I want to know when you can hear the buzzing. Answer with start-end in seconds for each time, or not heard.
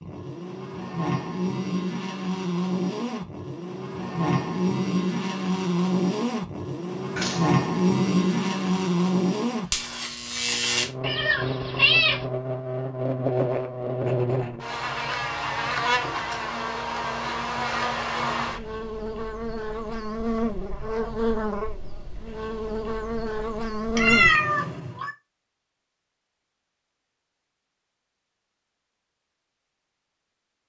0.0-24.3.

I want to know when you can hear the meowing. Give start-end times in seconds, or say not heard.
7.2-7.6, 11.0-12.2, 23.9-25.1.